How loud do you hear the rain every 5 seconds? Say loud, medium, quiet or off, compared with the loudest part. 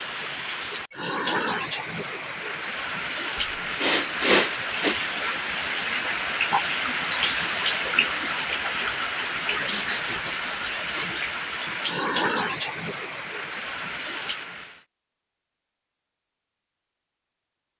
loud, loud, loud, off.